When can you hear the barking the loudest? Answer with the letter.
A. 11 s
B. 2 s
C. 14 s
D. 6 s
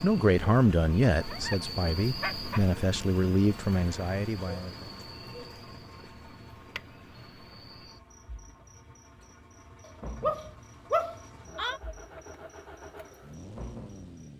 A.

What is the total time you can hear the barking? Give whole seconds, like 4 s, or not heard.
3 s.